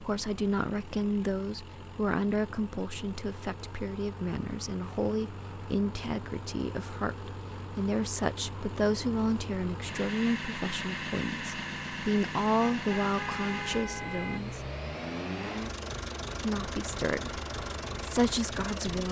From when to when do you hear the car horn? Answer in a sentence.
The car horn can be heard from 12.7 to 14.5 s.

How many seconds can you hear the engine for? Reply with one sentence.
The engine can be heard for 19 seconds in total.